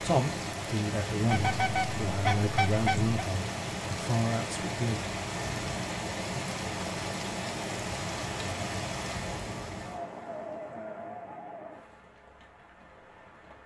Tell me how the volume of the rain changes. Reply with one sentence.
The volume of the rain goes down.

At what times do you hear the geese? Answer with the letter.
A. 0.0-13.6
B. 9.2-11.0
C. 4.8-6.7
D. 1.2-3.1
D.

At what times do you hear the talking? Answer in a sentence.
The talking can be heard from 0.0 to 5.0 s.